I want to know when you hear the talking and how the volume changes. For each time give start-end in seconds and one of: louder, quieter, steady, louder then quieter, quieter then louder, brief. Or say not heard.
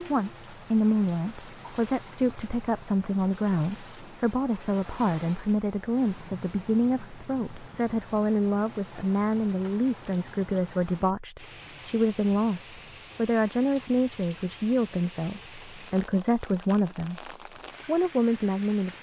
0.1-18.9 steady.